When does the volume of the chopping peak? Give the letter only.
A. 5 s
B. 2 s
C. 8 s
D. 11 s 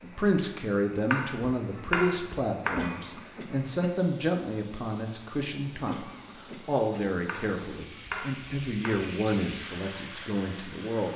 B.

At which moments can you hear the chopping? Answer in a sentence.
The chopping can be heard from 1.1 to 3.0 s and from 7.2 to 9.2 s.